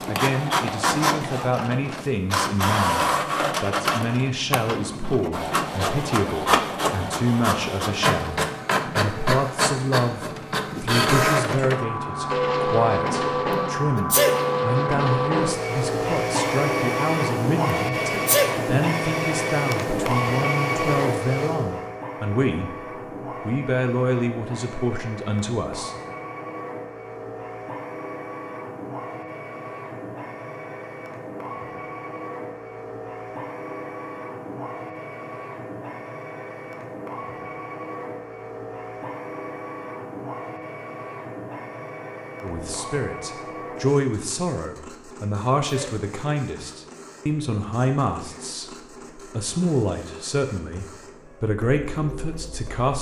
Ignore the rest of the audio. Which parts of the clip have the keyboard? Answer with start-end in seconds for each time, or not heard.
not heard.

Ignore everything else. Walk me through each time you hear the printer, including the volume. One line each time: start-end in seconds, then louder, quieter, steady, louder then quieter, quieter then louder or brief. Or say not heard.
0.0-52.9 quieter.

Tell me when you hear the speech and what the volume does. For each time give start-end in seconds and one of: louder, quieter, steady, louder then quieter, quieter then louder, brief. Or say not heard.
0.1-22.9 steady
23.4-25.9 brief
42.4-52.9 steady.